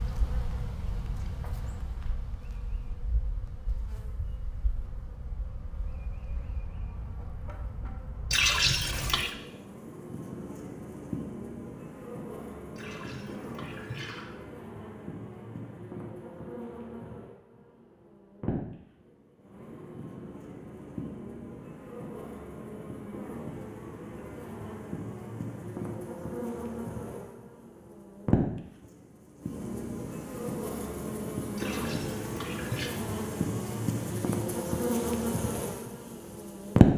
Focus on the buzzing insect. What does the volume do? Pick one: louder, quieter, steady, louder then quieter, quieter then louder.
louder.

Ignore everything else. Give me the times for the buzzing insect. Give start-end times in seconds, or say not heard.
0.0-36.9.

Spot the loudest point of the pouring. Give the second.
9 s.